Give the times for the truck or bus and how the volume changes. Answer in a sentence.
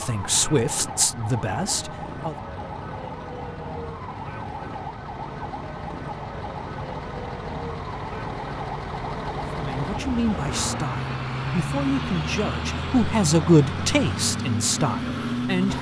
The truck or bus can be heard from 0.0 to 15.7 s, getting louder.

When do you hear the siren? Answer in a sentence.
The siren can be heard from 0.0 to 10.8 s.